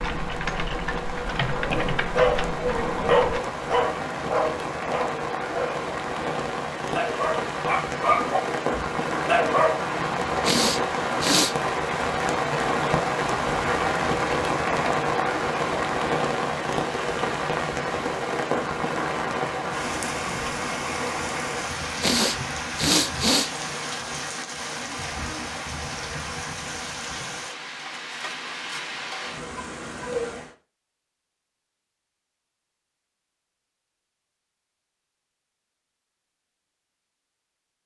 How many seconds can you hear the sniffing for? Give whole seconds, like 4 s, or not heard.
3 s.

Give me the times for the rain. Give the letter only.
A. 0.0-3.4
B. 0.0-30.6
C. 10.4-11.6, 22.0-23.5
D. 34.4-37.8
B.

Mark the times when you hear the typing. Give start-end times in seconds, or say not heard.
0.0-3.4.